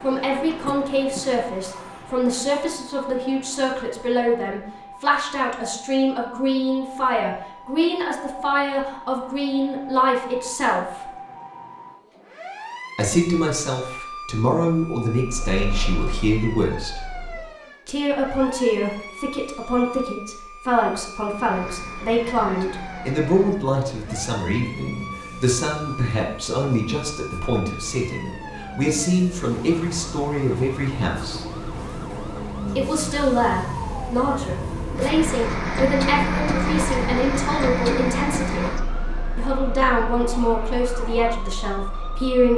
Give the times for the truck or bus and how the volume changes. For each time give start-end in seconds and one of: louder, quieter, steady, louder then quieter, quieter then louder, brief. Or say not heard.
15.1-17.6 brief
21.2-42.5 louder then quieter.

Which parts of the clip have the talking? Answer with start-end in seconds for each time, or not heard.
0.0-11.1, 12.9-17.0, 17.9-31.4, 32.8-38.6, 39.4-42.5.